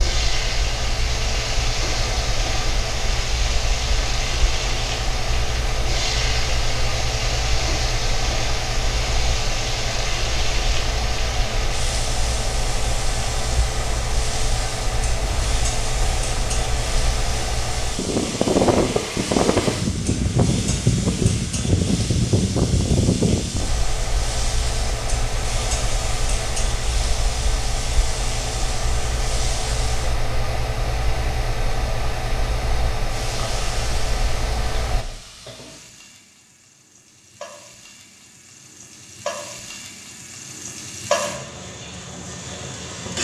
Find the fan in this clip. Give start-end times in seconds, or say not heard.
0.0-35.0.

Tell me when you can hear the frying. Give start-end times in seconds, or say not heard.
0.0-30.1, 33.0-43.1.